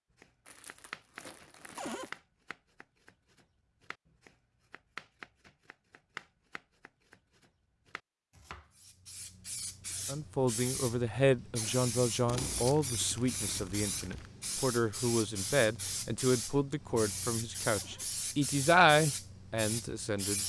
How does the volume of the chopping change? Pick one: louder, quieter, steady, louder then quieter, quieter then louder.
quieter.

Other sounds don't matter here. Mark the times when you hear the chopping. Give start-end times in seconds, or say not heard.
0.1-8.7.